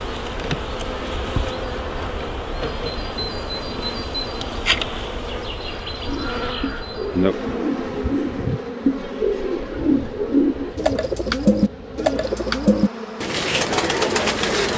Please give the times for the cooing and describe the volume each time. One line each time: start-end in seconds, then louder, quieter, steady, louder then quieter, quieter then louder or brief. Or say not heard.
6.0-14.7 louder.